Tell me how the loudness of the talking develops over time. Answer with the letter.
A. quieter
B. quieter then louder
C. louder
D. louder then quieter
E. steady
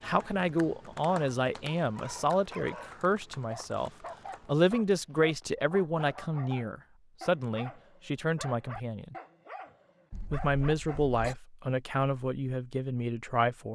E.